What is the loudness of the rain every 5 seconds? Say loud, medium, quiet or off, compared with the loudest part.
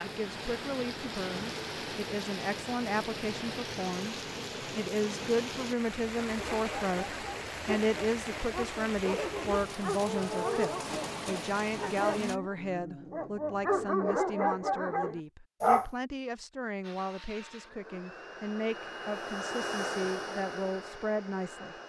loud, loud, loud, off, off.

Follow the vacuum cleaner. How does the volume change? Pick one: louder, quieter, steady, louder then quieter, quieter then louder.
louder then quieter.